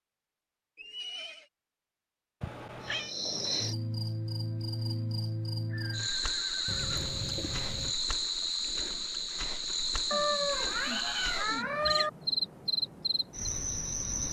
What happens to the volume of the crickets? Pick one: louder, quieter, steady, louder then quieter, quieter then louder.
steady.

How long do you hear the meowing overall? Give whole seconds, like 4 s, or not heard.
4 s.